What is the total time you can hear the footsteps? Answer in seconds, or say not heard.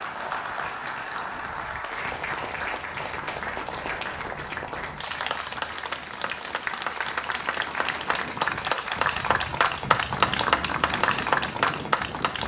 not heard.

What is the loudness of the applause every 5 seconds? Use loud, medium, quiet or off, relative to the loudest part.
medium, loud, loud.